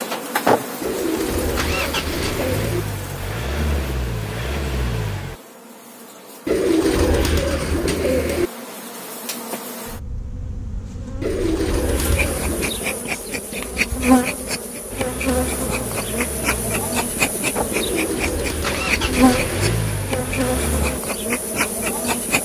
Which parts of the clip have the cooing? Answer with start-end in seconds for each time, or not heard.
0.8-2.9, 6.5-8.5, 11.2-12.8, 17.7-19.6.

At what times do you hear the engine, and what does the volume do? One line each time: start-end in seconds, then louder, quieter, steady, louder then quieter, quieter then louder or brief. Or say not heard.
0.0-5.3 quieter
14.9-21.0 louder.